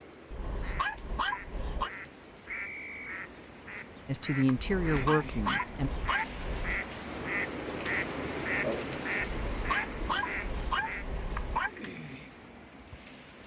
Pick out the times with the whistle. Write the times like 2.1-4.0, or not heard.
2.5-3.2.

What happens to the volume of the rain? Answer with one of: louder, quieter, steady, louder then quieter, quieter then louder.
louder then quieter.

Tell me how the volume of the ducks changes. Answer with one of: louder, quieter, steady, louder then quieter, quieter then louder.
louder.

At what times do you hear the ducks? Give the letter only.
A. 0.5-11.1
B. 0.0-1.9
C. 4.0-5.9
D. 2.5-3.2
A.